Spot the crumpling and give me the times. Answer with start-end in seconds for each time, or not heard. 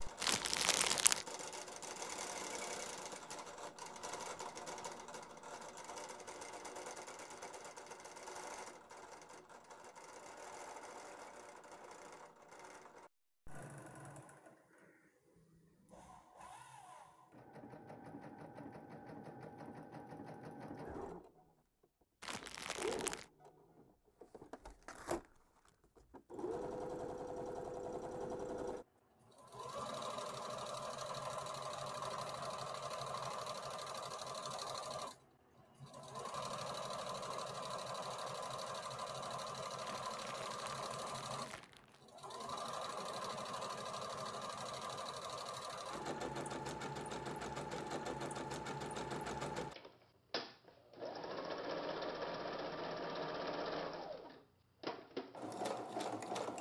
0.2-1.2, 22.2-23.2, 39.8-42.0.